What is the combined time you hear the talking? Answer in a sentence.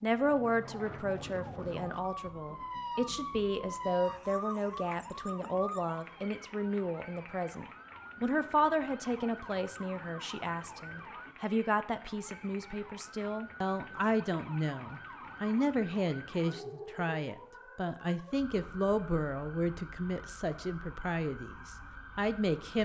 The talking can be heard for 23 seconds in total.